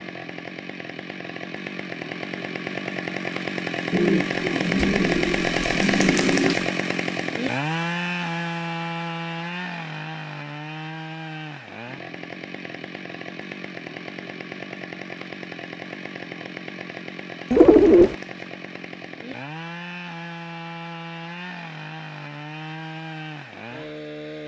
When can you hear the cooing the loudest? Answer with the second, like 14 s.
18 s.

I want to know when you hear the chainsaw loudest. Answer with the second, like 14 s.
6 s.